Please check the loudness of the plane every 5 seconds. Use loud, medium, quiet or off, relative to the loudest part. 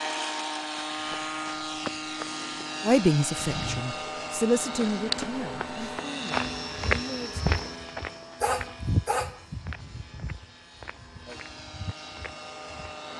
loud, loud, medium.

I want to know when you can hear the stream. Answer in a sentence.
The stream can't be heard in this clip.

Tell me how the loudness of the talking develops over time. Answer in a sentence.
The volume of the talking goes up, then down.